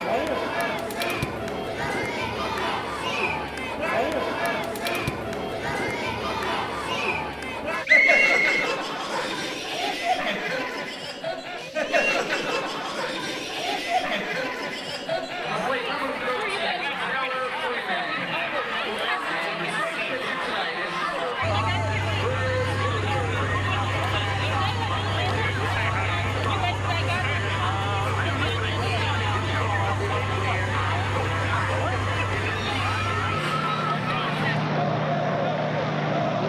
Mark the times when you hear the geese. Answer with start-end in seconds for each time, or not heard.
not heard.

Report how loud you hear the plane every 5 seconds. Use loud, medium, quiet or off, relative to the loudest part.
off, off, off, off, medium, medium, loud, loud.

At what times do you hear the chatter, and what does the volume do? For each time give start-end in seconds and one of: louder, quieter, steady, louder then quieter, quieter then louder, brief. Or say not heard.
0.0-36.4 steady.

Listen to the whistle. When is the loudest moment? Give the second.
8 s.